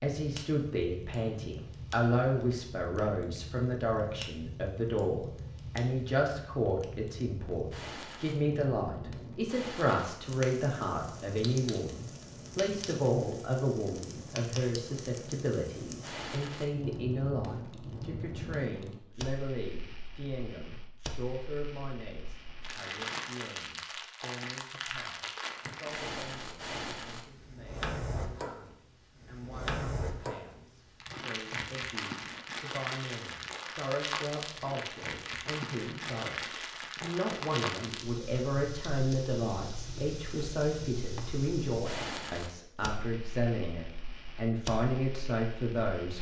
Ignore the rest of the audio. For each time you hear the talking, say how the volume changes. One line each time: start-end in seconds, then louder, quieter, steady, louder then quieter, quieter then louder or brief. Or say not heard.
0.0-46.1 quieter then louder.